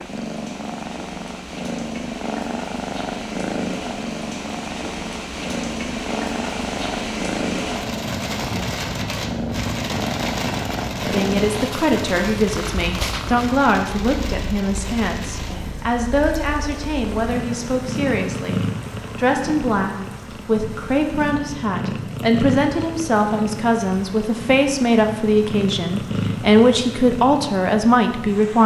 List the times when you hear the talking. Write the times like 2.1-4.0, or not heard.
11.1-28.6.